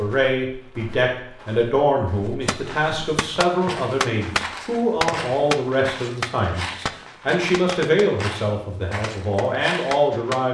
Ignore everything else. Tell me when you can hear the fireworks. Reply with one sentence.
You can hear the fireworks from 2.4 to 10.5 s.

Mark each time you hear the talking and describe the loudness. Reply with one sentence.
You can hear the talking from 0.0 to 10.5 s, at a steady volume.